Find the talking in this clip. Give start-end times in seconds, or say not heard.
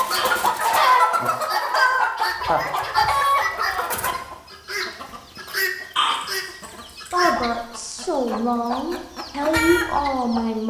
7.1-10.6.